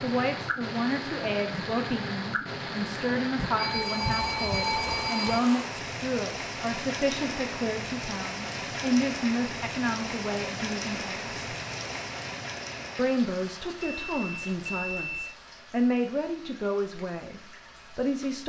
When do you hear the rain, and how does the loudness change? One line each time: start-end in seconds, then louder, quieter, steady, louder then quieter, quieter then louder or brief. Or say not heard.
0.0-18.4 quieter.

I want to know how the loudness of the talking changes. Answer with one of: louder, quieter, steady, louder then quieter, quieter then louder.
steady.